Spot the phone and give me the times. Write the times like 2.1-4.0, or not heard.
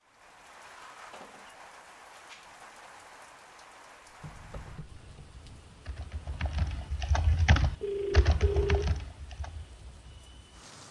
7.8-9.0.